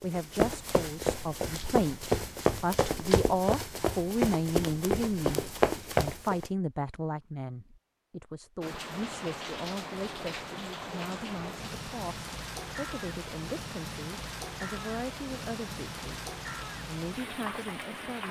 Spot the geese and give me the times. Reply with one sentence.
You can't hear the geese here.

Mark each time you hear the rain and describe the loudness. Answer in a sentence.
You can hear the rain from 8.6 to 18.2 s, at a steady volume.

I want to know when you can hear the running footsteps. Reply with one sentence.
You can hear the running footsteps from 0.0 to 6.5 s.